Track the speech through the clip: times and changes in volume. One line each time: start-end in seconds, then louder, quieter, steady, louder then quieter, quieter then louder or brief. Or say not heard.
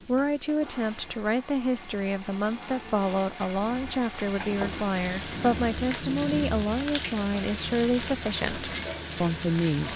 0.1-9.9 steady.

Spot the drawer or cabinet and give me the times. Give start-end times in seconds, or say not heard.
not heard.